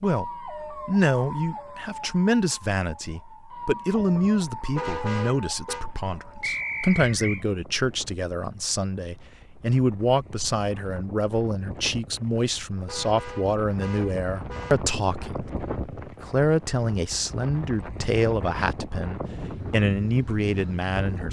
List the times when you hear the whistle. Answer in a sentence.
You can hear the whistle from 6.4 to 7.5 s.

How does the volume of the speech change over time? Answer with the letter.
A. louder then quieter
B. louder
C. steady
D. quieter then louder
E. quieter
C.